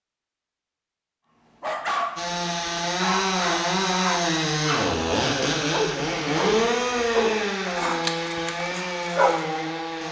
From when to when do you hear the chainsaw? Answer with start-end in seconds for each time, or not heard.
2.1-10.0.